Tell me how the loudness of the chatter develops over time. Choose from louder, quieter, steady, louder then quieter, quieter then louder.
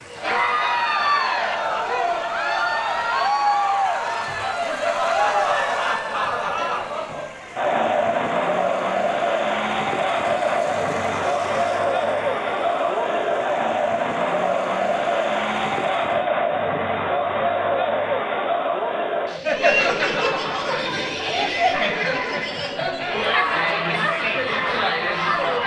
steady.